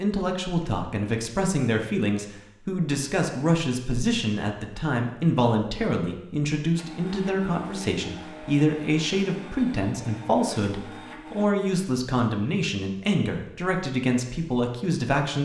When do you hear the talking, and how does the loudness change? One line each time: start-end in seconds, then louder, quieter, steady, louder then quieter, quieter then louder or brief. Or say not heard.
0.0-15.3 steady.